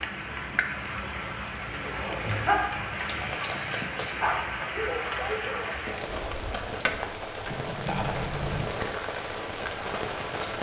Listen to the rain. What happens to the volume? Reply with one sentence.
The volume of the rain stays about the same.